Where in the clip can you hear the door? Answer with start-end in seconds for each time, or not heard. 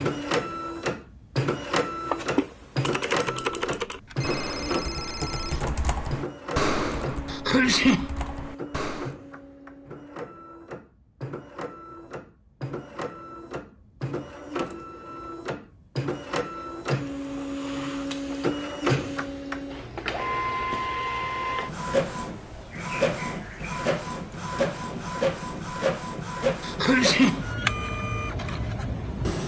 not heard.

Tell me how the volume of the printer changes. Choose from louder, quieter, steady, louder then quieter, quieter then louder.
quieter then louder.